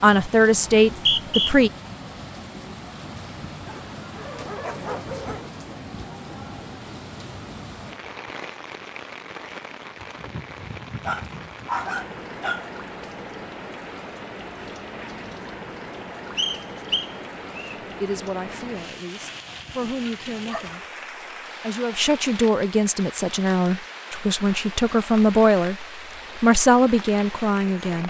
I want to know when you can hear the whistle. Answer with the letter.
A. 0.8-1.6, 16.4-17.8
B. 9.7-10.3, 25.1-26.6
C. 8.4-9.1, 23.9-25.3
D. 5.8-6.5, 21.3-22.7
A.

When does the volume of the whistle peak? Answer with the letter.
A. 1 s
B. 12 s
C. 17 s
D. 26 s
A.